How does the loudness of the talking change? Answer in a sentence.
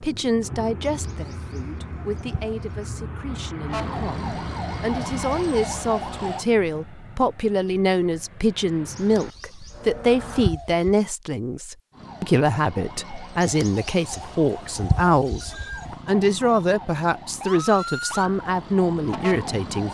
The loudness of the talking goes up.